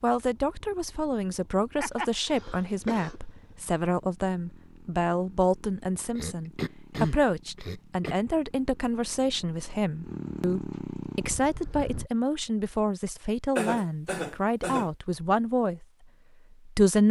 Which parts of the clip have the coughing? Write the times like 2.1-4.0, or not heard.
1.8-3.2, 6.2-8.2, 13.6-14.9.